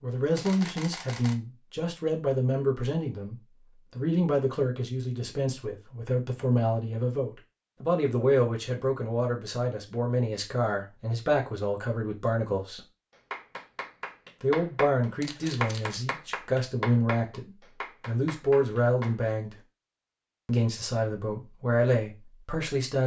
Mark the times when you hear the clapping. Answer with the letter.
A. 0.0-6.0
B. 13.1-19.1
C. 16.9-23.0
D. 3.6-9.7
B.